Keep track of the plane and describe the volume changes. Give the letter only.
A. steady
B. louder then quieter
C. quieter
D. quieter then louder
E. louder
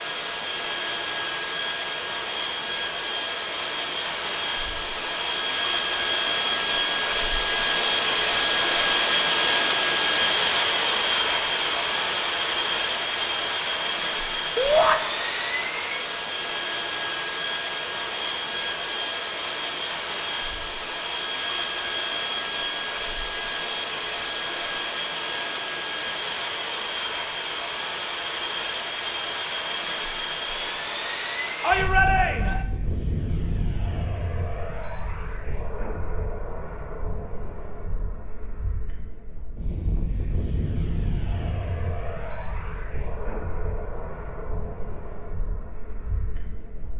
C.